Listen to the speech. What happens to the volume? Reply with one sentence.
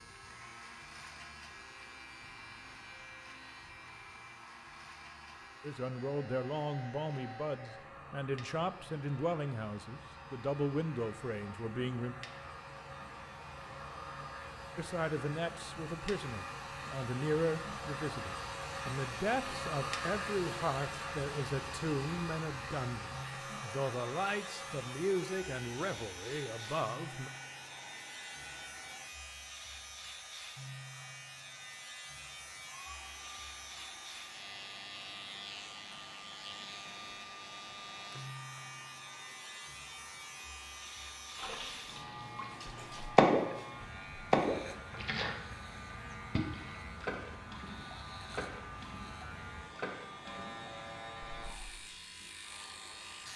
The volume of the speech stays about the same.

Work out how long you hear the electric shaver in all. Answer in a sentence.
The electric shaver can be heard for 53 seconds in total.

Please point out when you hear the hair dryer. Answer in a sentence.
You can hear the hair dryer from 0.1 to 53.3 s.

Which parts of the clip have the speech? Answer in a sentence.
The speech can be heard from 5.6 to 12.2 s and from 14.8 to 27.3 s.